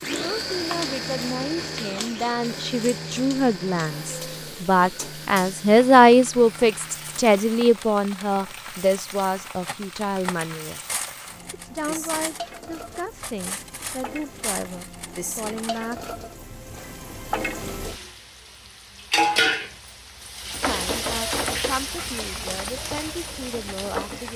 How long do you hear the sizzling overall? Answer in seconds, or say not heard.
24 s.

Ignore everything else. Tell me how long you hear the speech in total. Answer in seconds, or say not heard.
19 s.